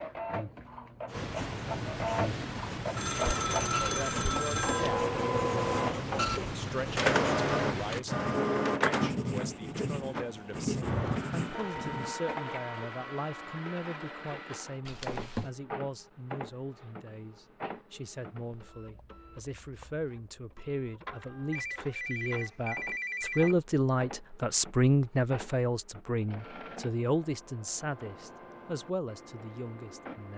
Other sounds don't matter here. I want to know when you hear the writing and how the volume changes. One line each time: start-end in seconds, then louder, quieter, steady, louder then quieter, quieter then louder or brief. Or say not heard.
1.1-12.2 steady.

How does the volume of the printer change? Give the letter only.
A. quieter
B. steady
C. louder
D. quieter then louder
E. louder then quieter
A.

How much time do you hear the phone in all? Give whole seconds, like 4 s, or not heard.
5 s.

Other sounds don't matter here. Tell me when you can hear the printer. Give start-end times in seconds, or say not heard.
0.0-30.3.